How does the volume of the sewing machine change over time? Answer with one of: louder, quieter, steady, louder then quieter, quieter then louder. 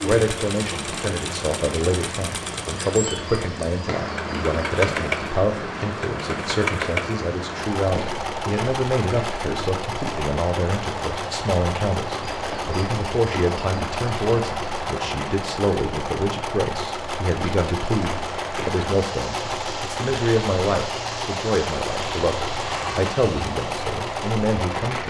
steady.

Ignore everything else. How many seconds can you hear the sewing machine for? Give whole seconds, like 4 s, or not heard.
25 s.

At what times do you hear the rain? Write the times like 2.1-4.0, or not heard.
0.0-25.0.